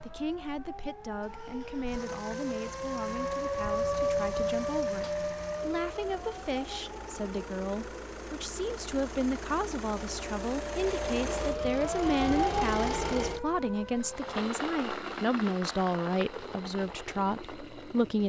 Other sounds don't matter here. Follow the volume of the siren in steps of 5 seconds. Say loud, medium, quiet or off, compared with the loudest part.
loud, medium, loud, off.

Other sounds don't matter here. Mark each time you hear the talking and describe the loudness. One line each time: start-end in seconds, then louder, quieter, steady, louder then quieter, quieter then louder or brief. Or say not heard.
0.0-18.2 louder.